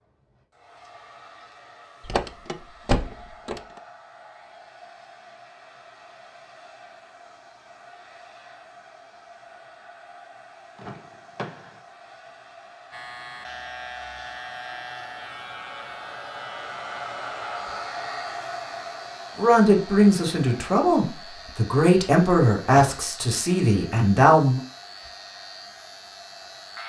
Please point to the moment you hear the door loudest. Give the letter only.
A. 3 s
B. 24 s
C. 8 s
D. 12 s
A.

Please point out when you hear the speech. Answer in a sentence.
The speech can be heard from 19.4 to 24.6 s.